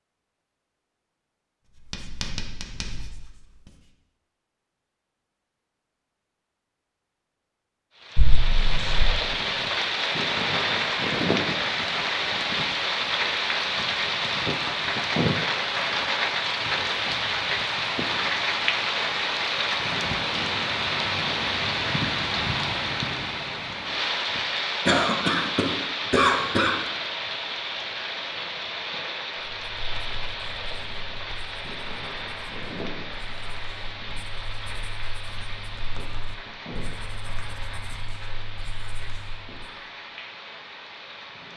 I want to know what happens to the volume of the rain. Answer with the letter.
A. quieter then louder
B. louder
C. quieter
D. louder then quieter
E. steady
C.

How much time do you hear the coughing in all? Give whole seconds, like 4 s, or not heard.
3 s.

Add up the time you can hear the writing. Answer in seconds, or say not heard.
12 s.